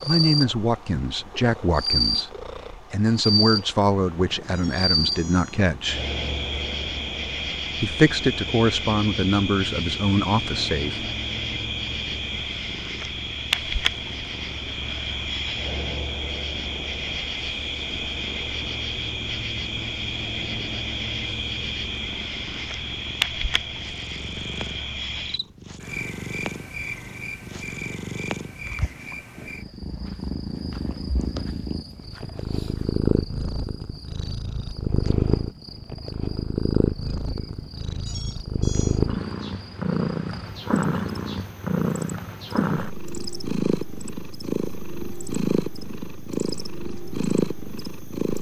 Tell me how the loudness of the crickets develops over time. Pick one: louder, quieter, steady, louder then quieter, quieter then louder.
quieter.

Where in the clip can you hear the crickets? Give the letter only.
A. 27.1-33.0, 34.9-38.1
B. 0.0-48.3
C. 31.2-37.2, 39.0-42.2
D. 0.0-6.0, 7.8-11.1
B.